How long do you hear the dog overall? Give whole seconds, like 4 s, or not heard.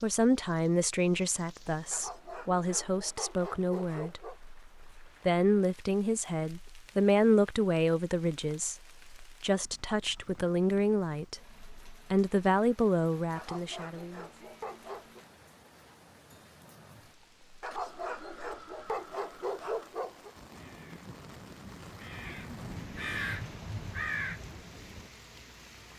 7 s.